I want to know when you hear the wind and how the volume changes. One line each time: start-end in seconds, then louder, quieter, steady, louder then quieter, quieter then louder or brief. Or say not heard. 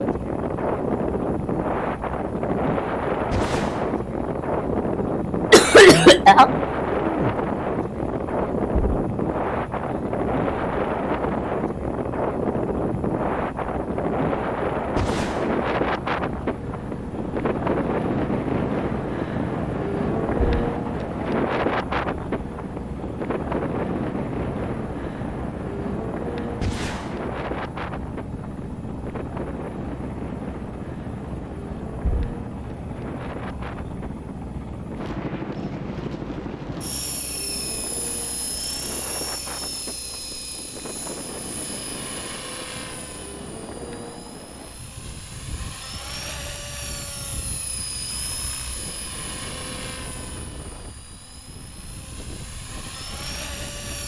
0.0-54.0 quieter.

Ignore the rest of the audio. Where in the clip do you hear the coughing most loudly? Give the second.
6 s.